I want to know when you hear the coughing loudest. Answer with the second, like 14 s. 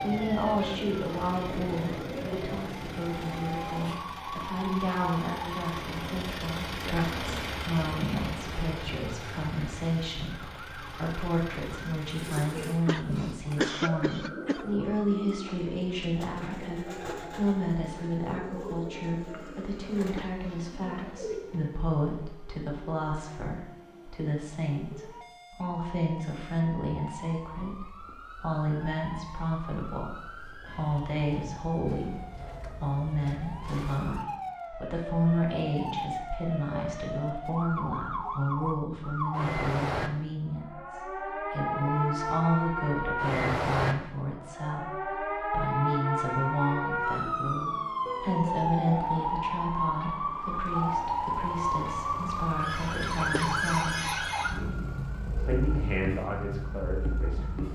14 s.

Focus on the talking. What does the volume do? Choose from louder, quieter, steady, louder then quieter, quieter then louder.
steady.